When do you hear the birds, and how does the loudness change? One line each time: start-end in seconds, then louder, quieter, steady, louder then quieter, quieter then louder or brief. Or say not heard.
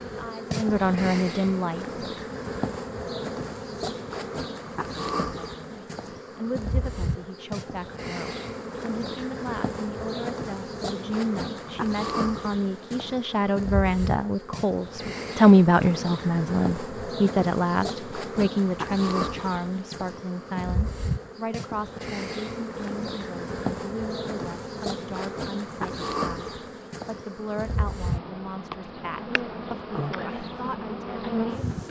not heard.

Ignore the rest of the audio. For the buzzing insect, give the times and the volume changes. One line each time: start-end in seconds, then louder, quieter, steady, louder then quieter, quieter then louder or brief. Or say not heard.
0.0-31.8 steady.